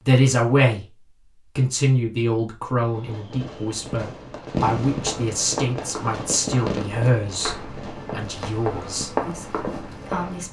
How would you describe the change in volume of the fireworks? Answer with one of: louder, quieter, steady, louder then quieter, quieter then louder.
louder then quieter.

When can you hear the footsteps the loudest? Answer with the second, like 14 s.
9 s.